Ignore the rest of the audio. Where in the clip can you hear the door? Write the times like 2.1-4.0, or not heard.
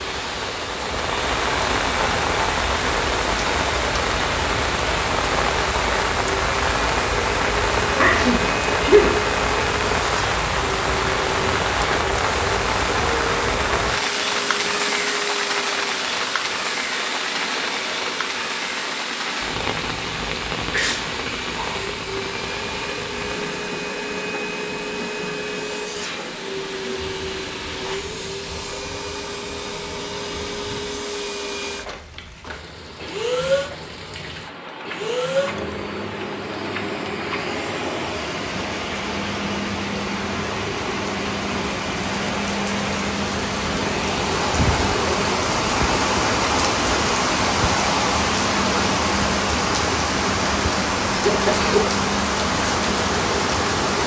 not heard.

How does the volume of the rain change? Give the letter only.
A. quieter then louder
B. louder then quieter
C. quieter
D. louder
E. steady
A.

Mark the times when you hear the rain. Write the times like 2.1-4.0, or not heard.
0.0-54.0.